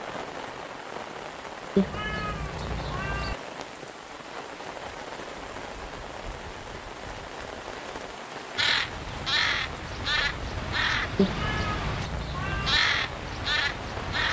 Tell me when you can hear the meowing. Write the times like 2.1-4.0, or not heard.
1.8-3.4, 11.2-12.8.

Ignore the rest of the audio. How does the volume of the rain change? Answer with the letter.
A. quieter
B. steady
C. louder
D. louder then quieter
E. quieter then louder
B.